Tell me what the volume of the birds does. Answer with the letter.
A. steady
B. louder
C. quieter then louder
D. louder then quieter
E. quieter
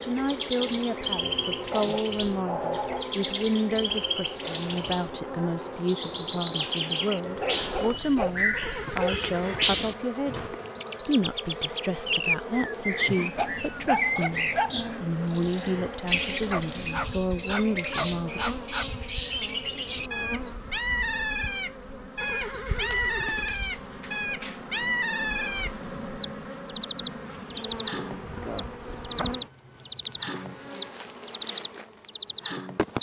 A.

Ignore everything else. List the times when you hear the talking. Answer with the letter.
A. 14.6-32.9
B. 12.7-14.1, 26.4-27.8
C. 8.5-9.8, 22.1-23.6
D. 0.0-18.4
D.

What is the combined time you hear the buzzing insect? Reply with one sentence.
You can hear the buzzing insect for 33 seconds altogether.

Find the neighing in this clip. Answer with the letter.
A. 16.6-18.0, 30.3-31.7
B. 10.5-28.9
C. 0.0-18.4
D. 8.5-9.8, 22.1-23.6
D.